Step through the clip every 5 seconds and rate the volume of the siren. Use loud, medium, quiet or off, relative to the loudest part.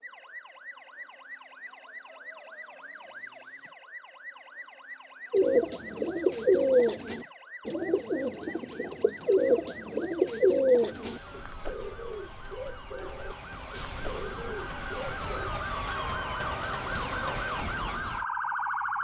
quiet, quiet, medium, loud.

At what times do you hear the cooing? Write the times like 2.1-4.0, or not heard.
5.3-15.5.